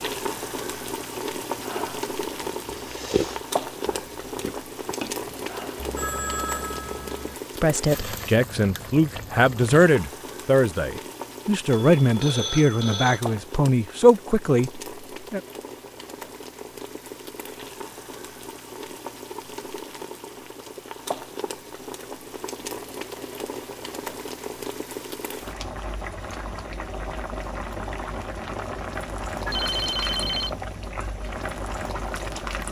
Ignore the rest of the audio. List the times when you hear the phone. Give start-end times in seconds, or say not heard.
5.8-7.3, 11.8-13.2, 29.4-30.6.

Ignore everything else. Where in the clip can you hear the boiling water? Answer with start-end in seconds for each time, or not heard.
0.0-32.6.